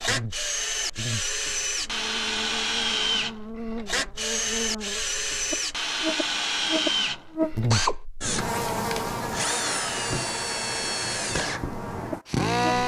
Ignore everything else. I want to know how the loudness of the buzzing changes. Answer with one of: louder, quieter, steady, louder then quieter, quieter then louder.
louder then quieter.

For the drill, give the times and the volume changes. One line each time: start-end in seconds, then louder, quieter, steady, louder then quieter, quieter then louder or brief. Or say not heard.
0.0-12.8 steady.